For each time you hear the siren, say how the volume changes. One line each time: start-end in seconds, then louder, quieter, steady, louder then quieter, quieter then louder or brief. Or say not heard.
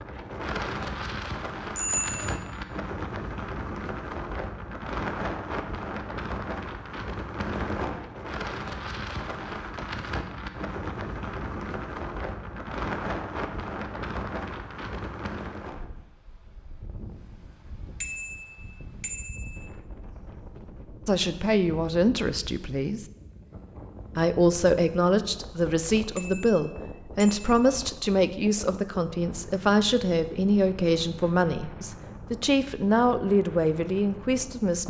not heard.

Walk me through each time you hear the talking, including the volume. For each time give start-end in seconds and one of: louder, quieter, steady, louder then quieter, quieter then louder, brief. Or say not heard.
21.1-23.1 brief
24.1-34.8 steady.